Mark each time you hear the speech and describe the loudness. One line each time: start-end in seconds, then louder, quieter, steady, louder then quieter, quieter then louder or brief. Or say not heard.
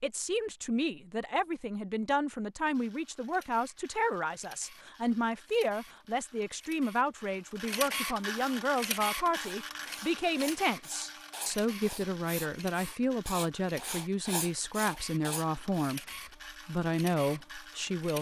0.0-16.1 steady
16.6-18.1 brief.